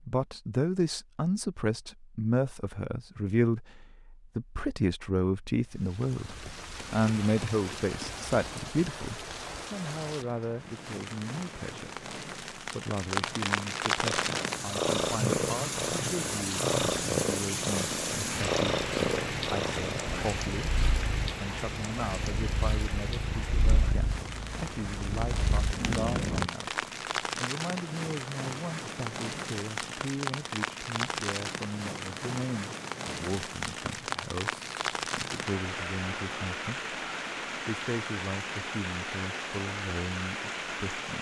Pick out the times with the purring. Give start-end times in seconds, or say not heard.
14.0-26.5.